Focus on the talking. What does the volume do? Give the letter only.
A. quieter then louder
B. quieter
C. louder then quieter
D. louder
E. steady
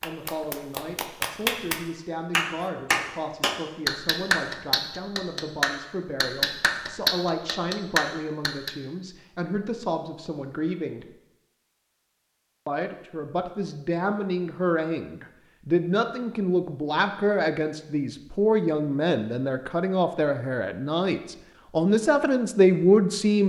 D.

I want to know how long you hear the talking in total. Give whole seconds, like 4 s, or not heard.
22 s.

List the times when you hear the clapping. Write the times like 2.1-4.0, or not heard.
0.0-8.7.